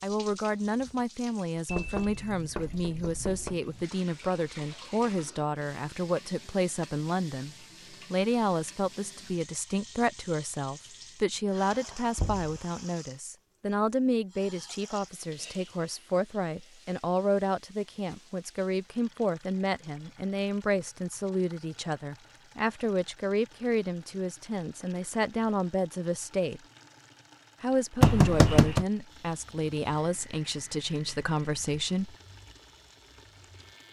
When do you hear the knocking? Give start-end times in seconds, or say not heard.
1.6-3.6, 12.2-12.6, 28.0-28.9.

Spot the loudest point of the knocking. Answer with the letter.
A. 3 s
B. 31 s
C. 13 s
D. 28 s
D.